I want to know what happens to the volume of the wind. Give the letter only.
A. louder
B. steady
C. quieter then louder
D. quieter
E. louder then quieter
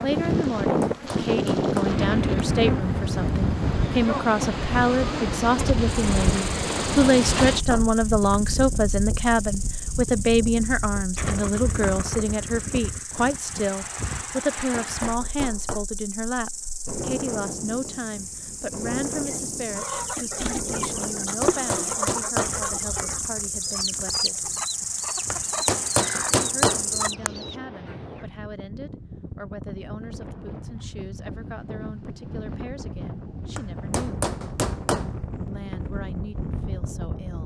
C.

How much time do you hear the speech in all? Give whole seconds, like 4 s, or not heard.
34 s.